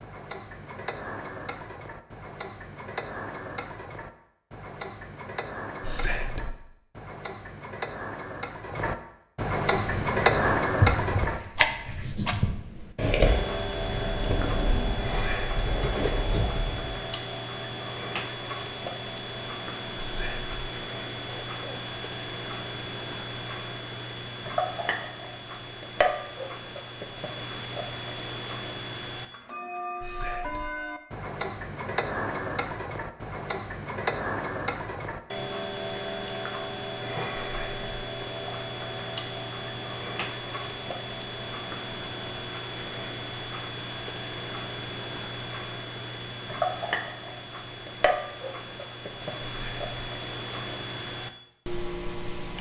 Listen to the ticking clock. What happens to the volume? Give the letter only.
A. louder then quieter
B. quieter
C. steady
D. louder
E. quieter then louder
C.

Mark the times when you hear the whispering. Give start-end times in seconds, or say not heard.
5.8-6.5, 15.1-15.6, 19.9-20.7, 30.0-30.8, 37.4-38.0, 49.4-50.0.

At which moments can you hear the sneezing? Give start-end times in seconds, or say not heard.
21.2-21.9.